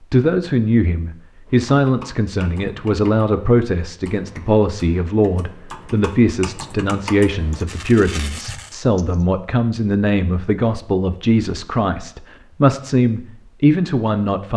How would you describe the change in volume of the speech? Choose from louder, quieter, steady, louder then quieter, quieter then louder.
steady.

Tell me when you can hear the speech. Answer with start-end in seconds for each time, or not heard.
0.1-14.5.